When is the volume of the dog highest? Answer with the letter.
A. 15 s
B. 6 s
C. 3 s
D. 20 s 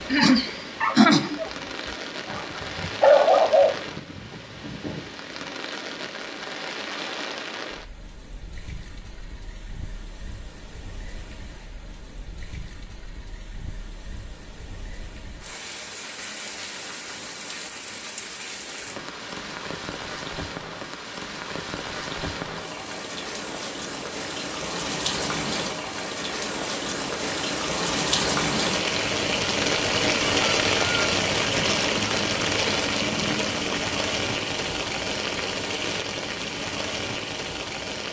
C.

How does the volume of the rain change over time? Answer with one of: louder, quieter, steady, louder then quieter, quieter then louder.
quieter then louder.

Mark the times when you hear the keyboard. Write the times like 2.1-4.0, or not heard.
not heard.